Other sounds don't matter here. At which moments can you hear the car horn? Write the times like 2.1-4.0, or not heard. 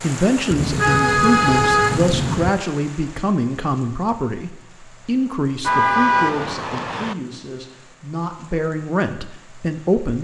0.5-2.5, 5.6-7.2.